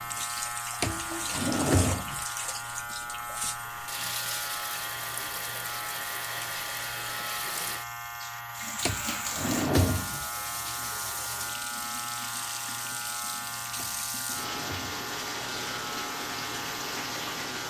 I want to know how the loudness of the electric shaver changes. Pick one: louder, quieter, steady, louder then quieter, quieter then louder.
steady.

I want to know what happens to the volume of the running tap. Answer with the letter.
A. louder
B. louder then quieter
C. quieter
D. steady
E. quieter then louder
D.